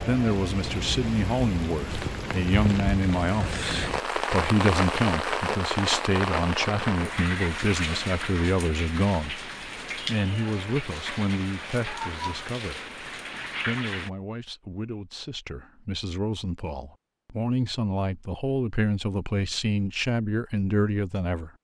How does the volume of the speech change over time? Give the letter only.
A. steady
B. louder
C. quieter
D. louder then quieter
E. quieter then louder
E.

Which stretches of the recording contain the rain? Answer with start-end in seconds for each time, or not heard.
0.0-14.1.